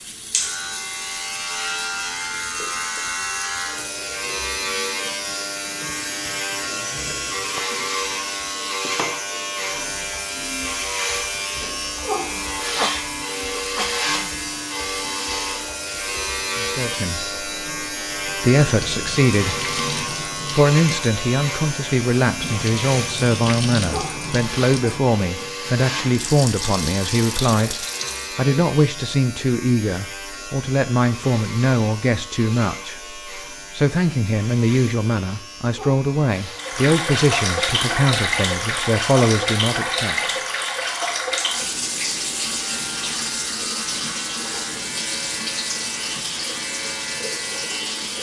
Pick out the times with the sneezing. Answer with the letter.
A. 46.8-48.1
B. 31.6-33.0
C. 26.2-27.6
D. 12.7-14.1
D.